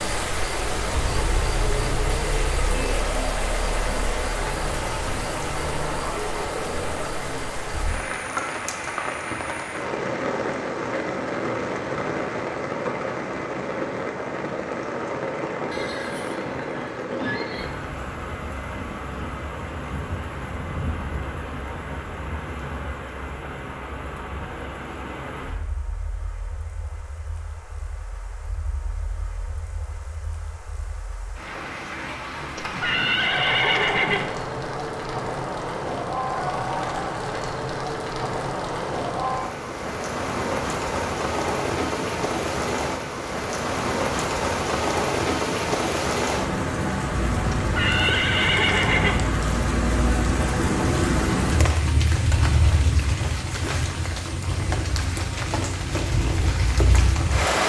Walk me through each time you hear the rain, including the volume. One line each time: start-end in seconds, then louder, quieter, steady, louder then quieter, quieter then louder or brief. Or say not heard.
0.0-57.6 quieter then louder.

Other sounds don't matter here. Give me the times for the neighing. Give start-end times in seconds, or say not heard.
15.7-17.7, 32.5-34.3, 47.5-49.2.